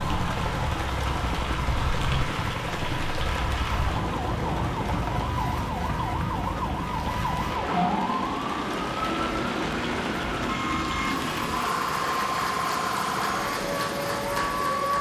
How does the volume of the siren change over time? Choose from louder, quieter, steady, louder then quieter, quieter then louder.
steady.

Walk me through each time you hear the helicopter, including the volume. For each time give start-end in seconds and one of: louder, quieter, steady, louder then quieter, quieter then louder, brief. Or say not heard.
0.0-14.9 steady.